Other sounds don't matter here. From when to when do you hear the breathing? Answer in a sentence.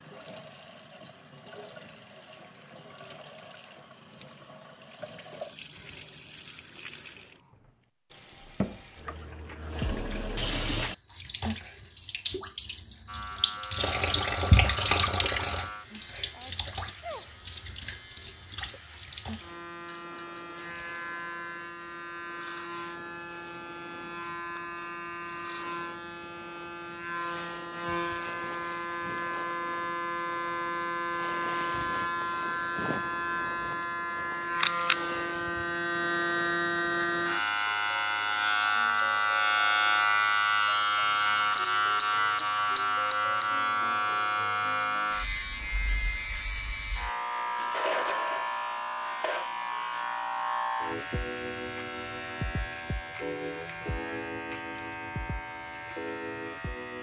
The breathing can't be heard in this clip.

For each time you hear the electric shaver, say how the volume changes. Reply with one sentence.
You can hear the electric shaver from 13.1 to 56.9 s, getting louder then quieter.